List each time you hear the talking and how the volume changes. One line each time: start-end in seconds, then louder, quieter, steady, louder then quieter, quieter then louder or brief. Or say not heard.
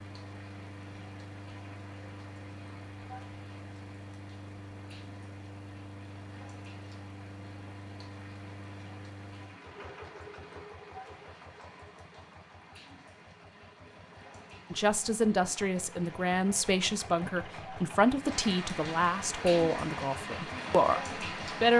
14.7-21.7 steady.